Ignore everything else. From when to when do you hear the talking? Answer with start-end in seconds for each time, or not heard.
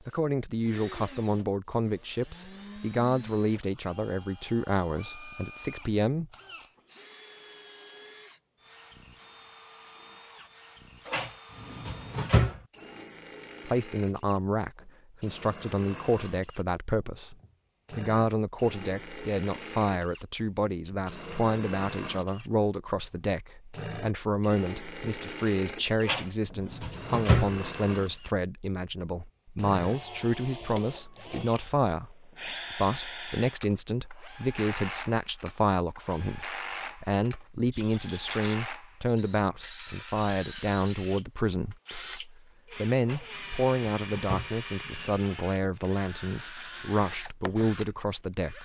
0.1-6.3, 13.7-48.6.